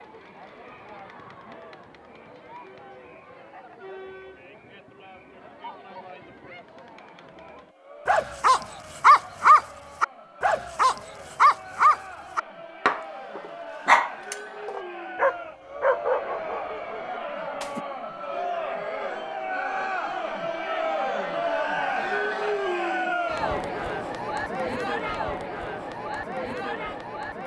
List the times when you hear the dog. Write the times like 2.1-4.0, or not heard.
8.1-17.8.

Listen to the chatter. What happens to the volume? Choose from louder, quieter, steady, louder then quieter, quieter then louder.
louder.